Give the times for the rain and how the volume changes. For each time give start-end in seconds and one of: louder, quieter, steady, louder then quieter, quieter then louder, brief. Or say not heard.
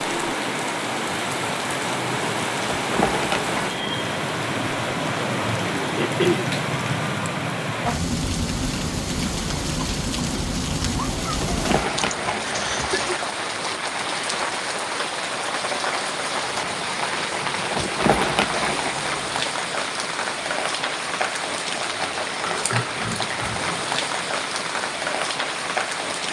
0.0-26.2 steady.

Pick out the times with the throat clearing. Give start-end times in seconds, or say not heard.
6.0-6.5, 12.0-13.2, 22.4-23.8.